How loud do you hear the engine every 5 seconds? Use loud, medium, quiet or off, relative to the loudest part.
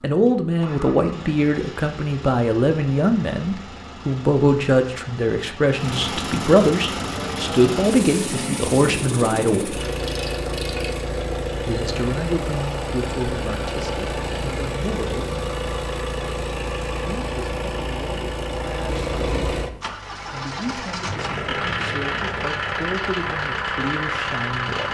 quiet, loud, loud, loud, loud.